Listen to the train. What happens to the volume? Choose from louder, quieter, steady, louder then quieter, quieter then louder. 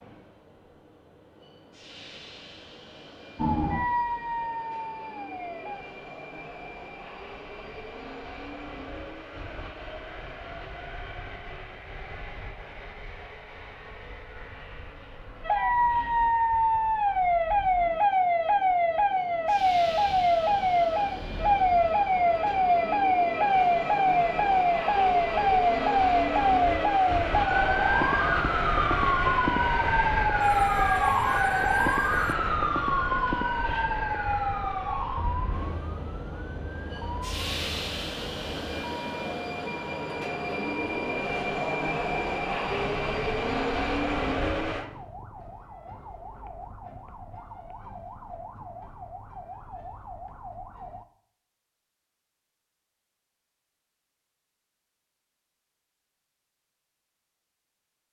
louder.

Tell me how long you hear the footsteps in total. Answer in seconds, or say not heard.
not heard.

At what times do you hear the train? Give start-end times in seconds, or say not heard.
0.0-44.9.